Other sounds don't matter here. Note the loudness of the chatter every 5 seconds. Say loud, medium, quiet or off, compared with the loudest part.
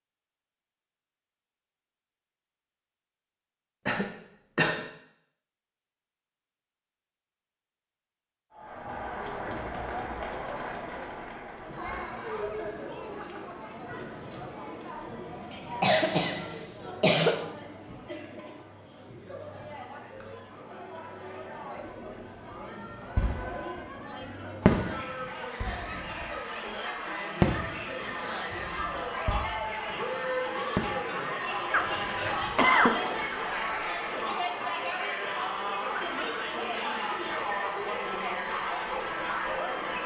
off, medium, medium, medium, medium, loud, loud, loud.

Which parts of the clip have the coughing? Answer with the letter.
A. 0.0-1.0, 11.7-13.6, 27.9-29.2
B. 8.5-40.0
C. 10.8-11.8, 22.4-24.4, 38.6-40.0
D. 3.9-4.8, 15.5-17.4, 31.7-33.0
D.